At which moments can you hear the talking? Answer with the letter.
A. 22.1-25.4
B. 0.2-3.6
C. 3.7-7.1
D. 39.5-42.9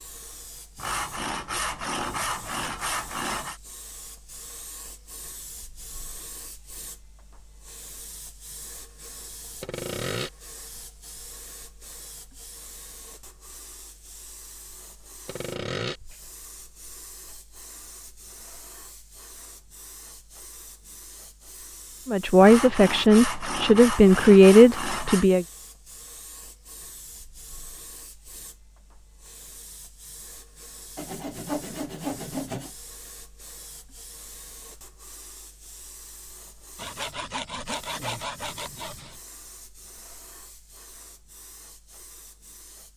A.